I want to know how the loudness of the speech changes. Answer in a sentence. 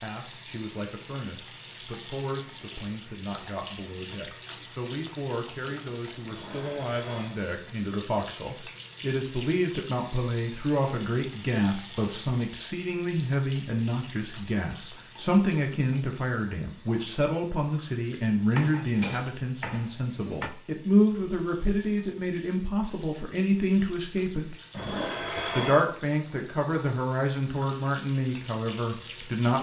The loudness of the speech goes up.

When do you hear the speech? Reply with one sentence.
The speech can be heard from 0.0 to 24.6 s and from 25.6 to 29.5 s.